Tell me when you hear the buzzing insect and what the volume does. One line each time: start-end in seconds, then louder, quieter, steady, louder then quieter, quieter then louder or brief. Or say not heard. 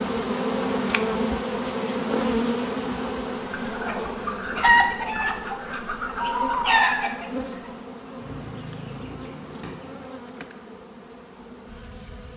0.0-12.3 quieter.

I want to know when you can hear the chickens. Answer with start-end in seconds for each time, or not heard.
3.5-10.1.